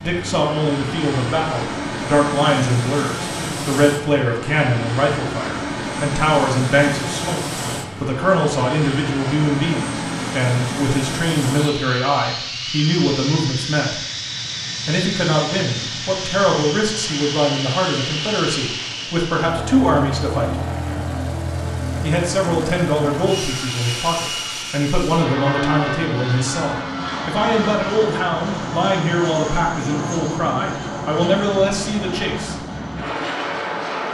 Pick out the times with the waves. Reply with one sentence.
The waves can't be heard in this clip.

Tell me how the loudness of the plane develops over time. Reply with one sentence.
The loudness of the plane stays about the same.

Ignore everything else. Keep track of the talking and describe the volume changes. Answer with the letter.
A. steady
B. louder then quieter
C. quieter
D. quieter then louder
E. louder
A.